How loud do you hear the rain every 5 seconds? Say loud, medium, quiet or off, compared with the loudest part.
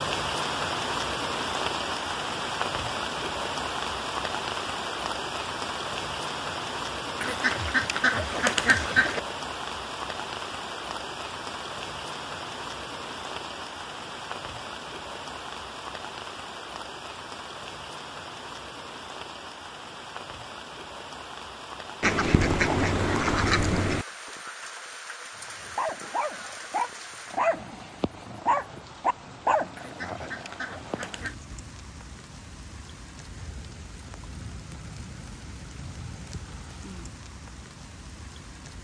loud, loud, medium, medium, medium, quiet, quiet, quiet.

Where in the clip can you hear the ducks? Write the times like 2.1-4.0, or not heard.
7.2-9.2, 22.0-24.1, 29.8-31.4.